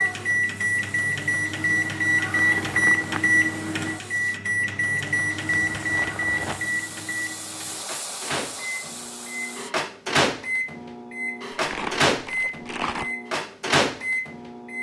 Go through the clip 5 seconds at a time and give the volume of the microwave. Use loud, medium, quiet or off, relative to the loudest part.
loud, medium, loud.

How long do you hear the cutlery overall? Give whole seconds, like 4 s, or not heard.
not heard.